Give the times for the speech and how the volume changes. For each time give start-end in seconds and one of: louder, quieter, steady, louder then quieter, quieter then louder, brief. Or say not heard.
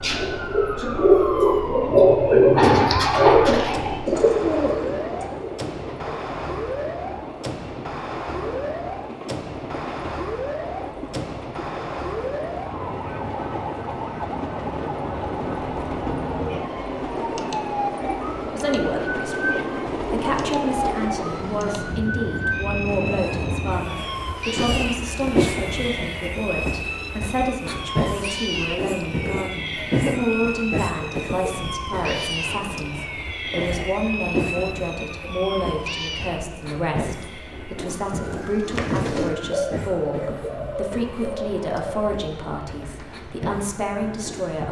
18.5-44.6 steady.